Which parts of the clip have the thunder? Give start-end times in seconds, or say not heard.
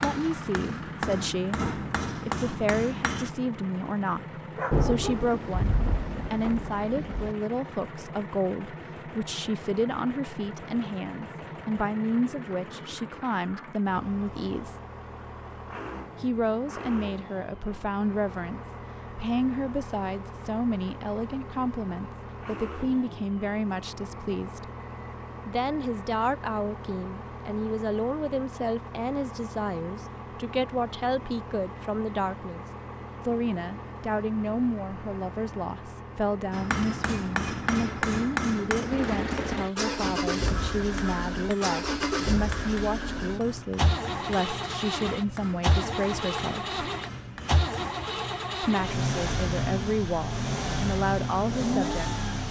4.7-7.3.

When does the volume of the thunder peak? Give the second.
5 s.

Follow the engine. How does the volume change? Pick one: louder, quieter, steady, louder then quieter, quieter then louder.
louder.